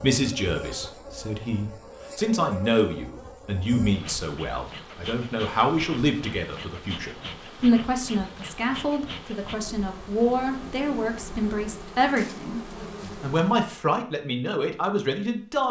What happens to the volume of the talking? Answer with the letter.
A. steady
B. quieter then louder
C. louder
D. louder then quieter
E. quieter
A.